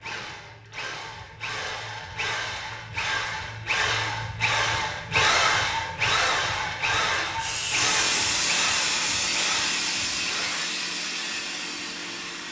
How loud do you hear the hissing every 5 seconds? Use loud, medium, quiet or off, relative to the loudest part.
off, loud, medium.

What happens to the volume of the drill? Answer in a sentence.
The loudness of the drill goes up, then down.